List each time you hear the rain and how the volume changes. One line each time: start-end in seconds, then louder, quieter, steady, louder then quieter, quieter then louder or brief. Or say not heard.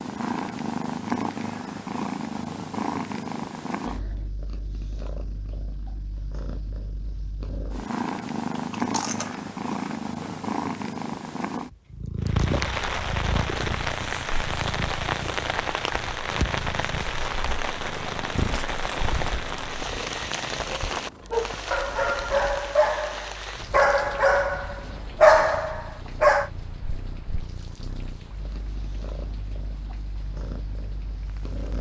12.2-31.7 quieter.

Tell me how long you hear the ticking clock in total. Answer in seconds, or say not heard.
not heard.